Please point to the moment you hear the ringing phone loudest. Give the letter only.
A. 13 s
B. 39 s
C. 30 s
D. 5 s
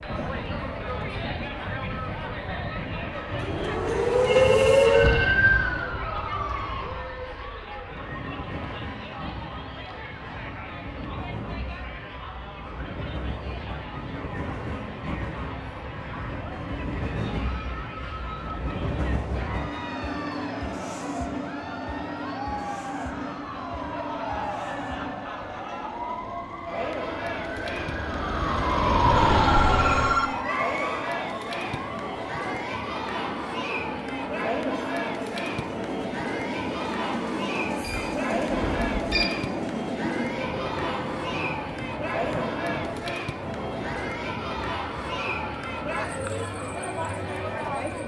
C.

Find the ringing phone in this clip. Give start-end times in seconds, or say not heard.
4.2-5.5, 29.2-30.3, 37.8-39.3.